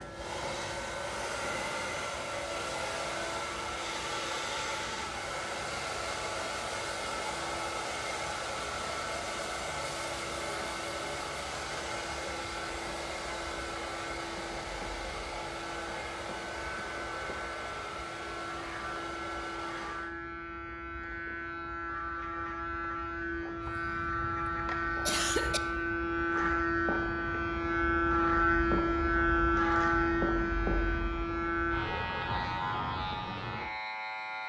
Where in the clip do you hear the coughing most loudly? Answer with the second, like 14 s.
25 s.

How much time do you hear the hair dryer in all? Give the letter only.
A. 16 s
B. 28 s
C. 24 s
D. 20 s
D.